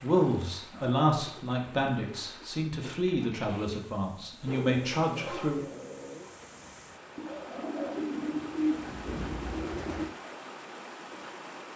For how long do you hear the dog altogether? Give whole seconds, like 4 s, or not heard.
5 s.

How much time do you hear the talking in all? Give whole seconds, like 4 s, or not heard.
6 s.